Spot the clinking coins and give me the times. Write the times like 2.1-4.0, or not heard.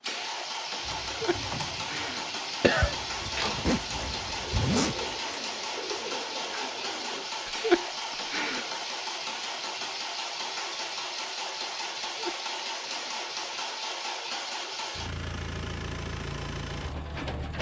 not heard.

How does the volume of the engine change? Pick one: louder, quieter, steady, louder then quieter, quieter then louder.
steady.